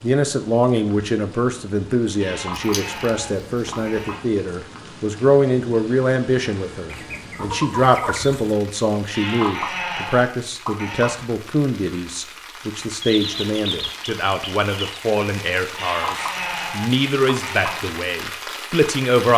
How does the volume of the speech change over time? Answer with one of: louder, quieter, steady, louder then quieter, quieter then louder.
steady.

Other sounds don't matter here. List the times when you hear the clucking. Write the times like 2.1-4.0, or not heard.
2.5-4.2, 6.9-8.5, 13.0-15.0.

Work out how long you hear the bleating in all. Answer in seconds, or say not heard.
6 s.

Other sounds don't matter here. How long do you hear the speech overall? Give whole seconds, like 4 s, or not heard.
19 s.